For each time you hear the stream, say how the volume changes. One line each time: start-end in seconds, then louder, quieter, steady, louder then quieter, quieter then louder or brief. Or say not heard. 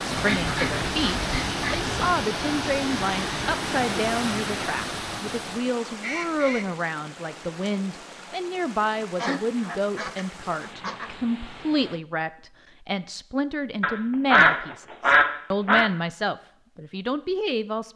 0.0-12.1 quieter.